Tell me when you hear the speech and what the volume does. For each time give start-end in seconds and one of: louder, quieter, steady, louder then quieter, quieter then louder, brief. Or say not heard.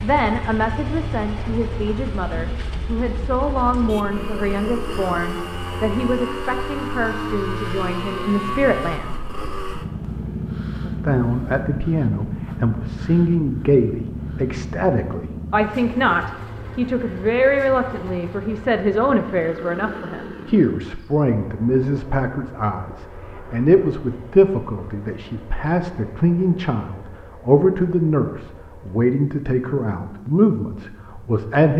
0.0-9.1 steady
10.8-31.7 steady.